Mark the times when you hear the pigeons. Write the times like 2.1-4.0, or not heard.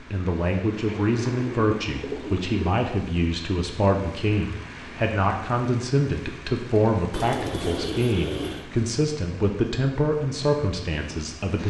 0.8-2.7, 7.1-8.7.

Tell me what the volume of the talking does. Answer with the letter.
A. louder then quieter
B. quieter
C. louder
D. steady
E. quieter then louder
D.